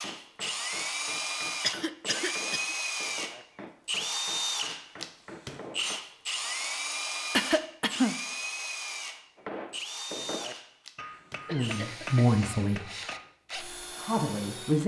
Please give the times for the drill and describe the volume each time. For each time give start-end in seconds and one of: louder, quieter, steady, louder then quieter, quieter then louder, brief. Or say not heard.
0.0-14.8 quieter.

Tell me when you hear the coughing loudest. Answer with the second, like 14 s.
8 s.